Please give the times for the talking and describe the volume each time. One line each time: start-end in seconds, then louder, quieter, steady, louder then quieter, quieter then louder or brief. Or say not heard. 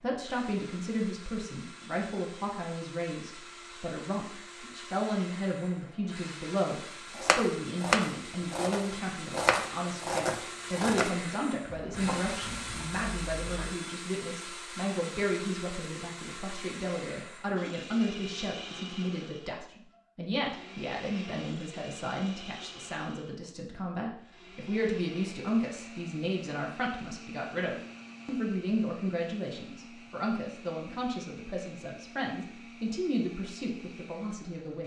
0.0-34.8 steady.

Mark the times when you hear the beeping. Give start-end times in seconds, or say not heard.
not heard.